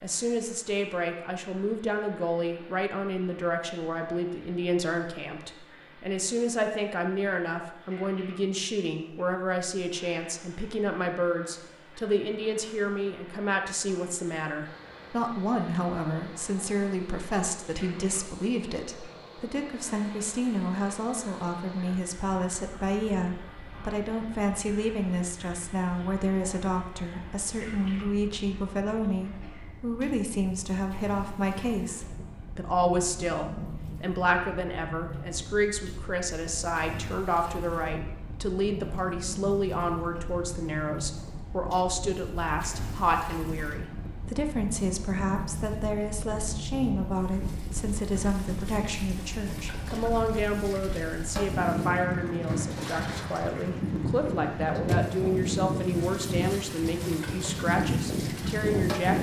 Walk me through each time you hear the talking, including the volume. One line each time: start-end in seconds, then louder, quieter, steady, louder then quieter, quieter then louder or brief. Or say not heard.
0.0-59.1 steady.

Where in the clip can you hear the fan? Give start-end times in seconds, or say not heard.
14.6-59.1.